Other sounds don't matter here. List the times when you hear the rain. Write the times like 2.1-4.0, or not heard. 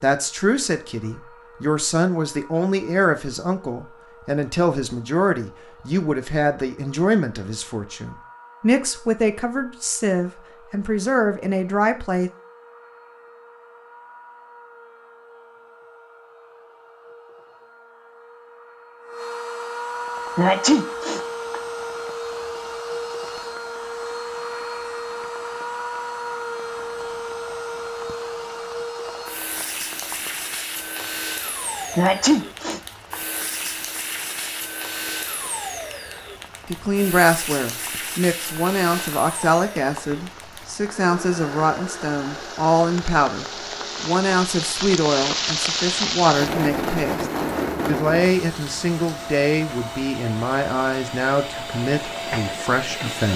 19.9-53.3.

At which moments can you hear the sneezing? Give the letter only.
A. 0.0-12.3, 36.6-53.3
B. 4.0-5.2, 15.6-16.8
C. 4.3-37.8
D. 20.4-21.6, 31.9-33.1
D.